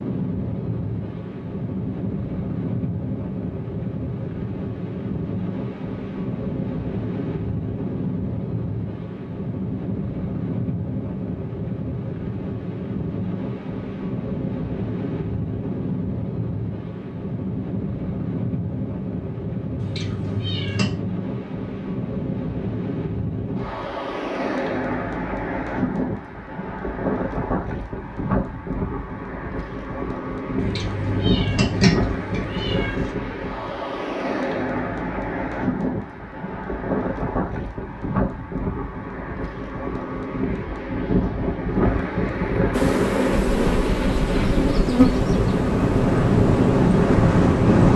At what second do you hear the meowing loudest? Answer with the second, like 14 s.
32 s.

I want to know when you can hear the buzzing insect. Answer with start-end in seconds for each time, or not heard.
42.7-47.8.